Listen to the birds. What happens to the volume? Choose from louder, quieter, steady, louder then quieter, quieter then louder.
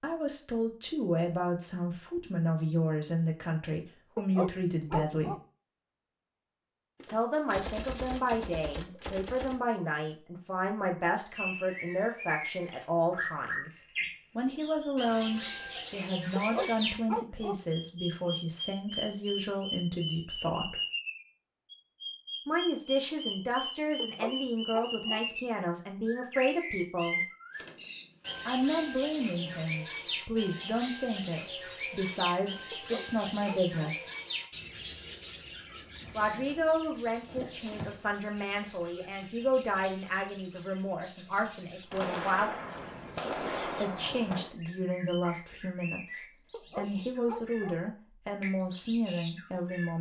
quieter.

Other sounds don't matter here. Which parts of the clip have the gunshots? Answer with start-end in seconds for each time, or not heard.
7.0-9.6, 27.5-28.5, 41.9-44.5.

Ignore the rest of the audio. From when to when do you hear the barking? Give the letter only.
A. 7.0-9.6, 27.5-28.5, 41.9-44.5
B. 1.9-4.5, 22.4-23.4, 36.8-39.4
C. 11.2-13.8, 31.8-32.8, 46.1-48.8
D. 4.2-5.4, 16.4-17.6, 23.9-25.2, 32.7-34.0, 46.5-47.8
D.